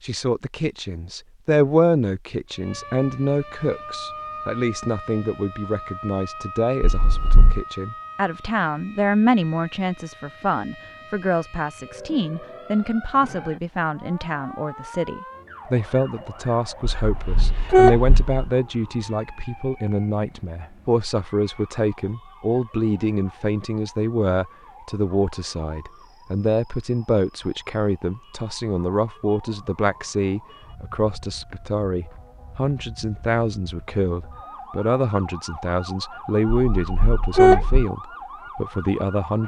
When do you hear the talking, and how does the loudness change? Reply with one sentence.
The talking can be heard from 0.0 to 39.4 s, at a steady volume.